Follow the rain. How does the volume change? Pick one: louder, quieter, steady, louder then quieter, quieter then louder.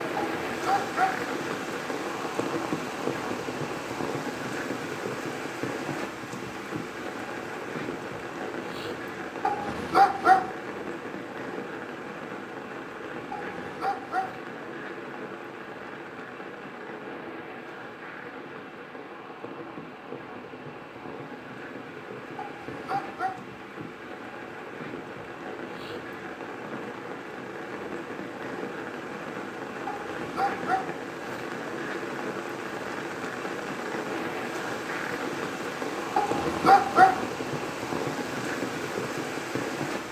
quieter then louder.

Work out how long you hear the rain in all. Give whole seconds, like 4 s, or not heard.
40 s.